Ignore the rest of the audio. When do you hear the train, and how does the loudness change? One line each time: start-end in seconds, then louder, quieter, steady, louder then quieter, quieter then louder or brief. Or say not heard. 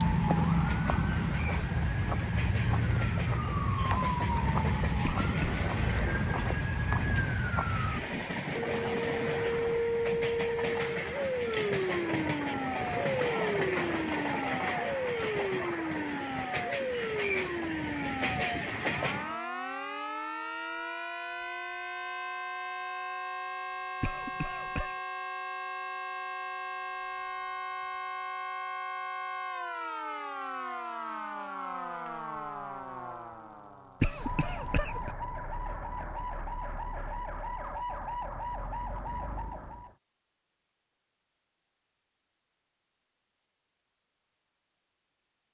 0.0-19.4 louder.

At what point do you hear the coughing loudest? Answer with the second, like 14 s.
34 s.